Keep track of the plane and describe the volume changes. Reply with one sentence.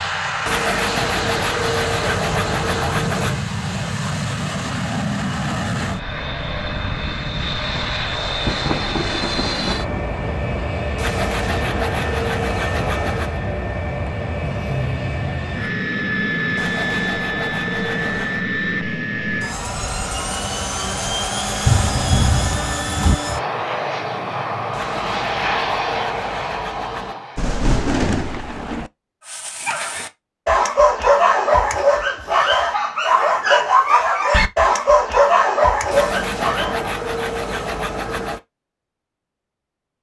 The loudness of the plane stays about the same.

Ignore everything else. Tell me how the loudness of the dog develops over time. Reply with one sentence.
The loudness of the dog stays about the same.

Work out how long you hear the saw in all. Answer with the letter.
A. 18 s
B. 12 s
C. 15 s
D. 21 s
B.